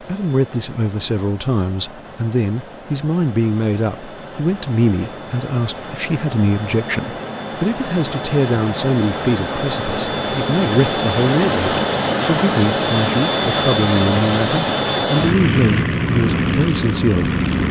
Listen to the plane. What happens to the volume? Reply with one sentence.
The volume of the plane goes up.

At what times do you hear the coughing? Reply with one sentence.
You can't hear the coughing here.